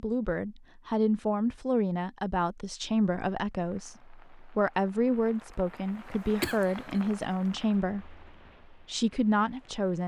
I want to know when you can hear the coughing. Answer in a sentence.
The coughing can be heard from 6.4 to 7.0 s.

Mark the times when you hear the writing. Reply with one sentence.
You can't hear the writing here.